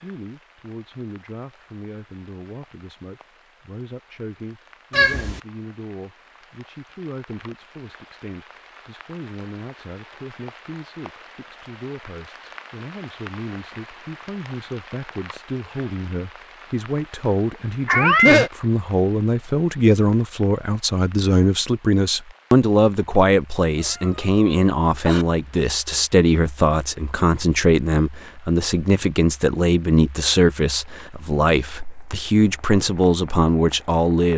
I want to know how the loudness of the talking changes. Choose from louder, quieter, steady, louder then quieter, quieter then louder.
louder.